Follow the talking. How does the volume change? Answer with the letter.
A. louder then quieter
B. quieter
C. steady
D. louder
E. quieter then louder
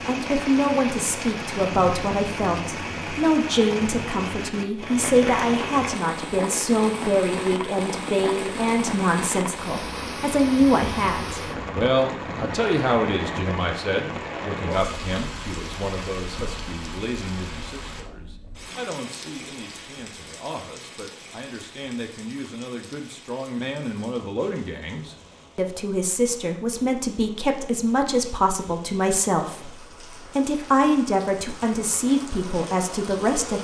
E.